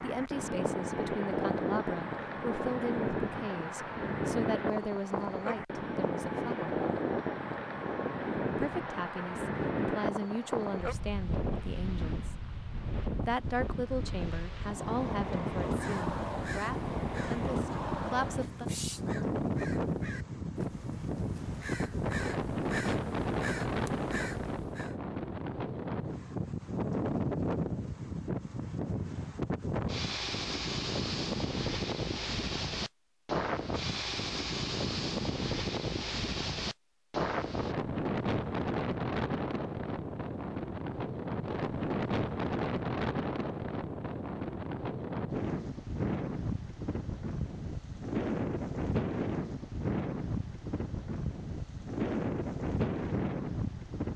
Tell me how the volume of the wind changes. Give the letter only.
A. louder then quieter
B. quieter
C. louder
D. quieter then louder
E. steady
E.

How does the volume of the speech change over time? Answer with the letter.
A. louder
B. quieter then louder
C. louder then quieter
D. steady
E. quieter
D.